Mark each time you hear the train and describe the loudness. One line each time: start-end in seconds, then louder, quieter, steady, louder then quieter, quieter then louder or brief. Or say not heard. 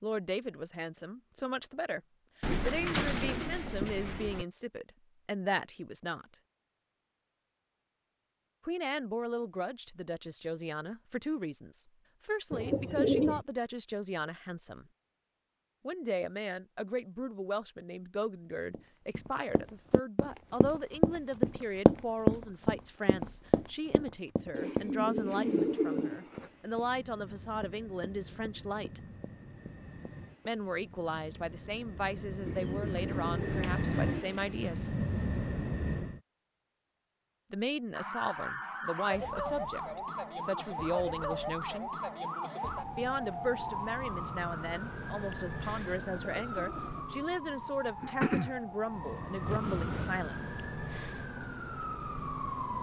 25.3-36.2 louder
48.8-50.5 brief.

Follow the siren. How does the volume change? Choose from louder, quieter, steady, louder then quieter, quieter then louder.
steady.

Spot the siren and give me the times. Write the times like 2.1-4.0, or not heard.
37.9-52.7.